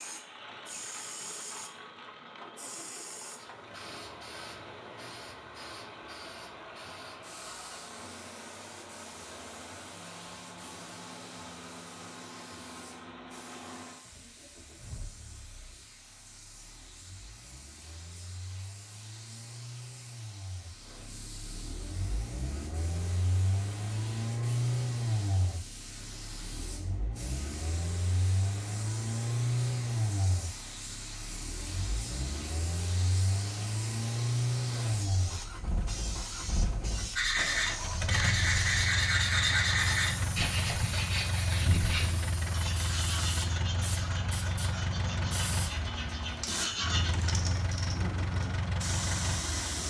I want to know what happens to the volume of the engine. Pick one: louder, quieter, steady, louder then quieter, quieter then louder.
louder.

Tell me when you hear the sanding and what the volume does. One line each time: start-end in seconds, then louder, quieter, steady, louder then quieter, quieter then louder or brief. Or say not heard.
37.1-47.1 quieter.